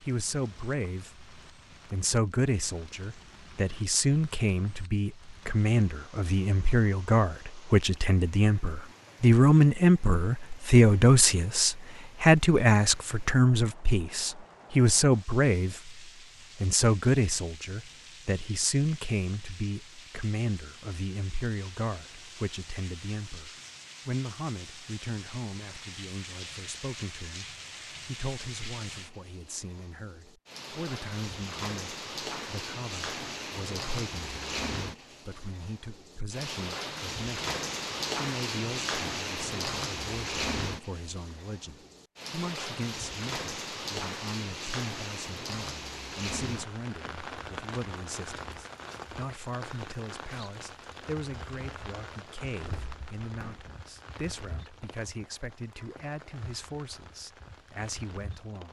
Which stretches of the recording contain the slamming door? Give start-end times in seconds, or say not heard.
52.5-53.7.